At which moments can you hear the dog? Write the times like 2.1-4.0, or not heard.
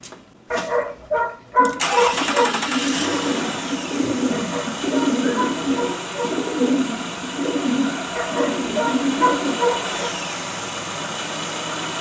0.5-2.5, 4.3-6.3, 8.2-10.1.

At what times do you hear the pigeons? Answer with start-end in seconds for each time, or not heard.
1.6-9.6.